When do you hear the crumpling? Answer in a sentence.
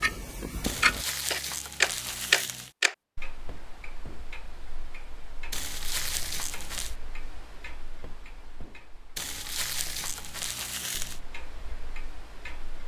The crumpling can be heard from 0.6 to 2.7 s, from 5.5 to 7.0 s and from 9.2 to 11.2 s.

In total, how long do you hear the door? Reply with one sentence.
You can hear the door for 2 seconds altogether.